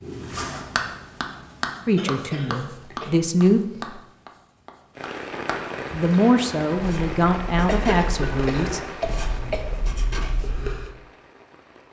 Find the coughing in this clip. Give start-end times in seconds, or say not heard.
1.9-4.0, 7.7-9.8.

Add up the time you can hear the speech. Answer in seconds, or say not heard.
5 s.